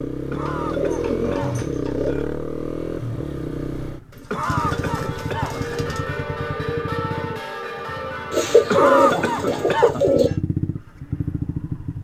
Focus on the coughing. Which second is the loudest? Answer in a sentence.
The loudest moment of the coughing is at 9 seconds.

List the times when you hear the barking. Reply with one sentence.
You can't hear the barking here.